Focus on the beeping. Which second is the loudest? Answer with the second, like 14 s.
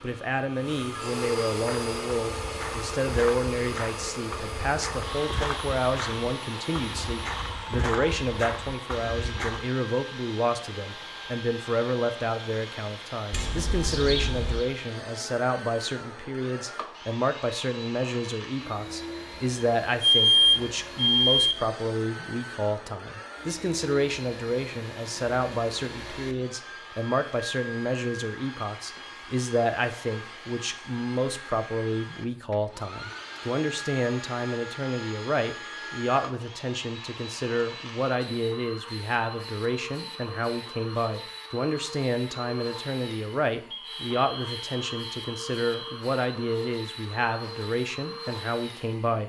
20 s.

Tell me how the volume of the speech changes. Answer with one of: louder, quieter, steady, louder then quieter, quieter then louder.
steady.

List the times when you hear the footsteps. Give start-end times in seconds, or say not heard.
1.6-9.7.